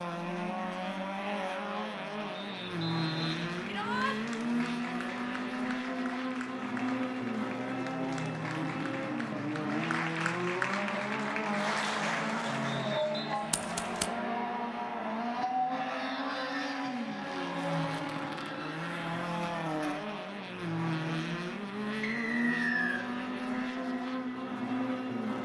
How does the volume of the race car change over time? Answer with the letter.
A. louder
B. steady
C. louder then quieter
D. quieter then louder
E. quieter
B.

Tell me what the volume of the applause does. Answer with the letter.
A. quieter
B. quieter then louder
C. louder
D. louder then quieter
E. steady
C.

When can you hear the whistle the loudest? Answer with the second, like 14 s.
23 s.